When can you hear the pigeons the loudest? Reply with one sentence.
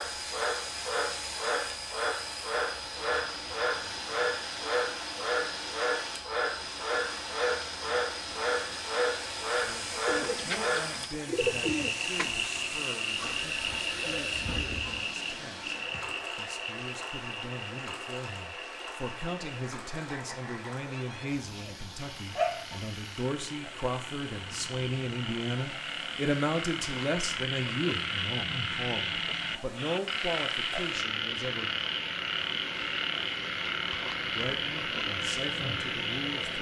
The volume of the pigeons peaks at 12 seconds.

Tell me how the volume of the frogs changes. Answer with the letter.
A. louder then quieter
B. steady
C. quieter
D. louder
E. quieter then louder
E.